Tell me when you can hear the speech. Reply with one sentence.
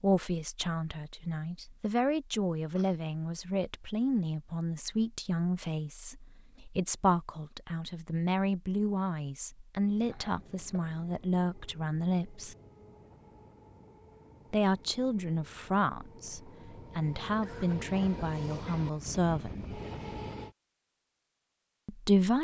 You can hear the speech from 0.0 to 12.6 s, from 14.5 to 19.7 s and from 21.9 to 22.3 s.